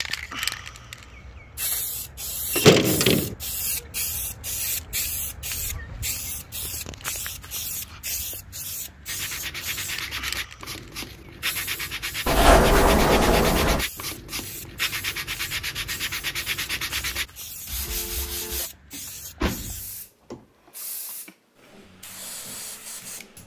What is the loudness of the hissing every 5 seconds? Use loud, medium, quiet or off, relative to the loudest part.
loud, loud, medium, medium, medium.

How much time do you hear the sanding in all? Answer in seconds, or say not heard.
10 s.